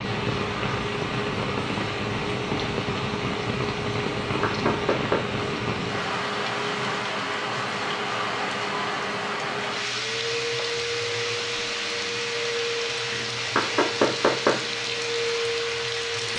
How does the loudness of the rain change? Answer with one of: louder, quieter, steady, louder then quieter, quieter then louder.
steady.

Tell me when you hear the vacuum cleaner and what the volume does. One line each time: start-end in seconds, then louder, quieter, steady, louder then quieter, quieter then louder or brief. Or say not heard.
0.0-16.3 steady.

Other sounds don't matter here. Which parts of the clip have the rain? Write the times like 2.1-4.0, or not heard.
0.0-16.3.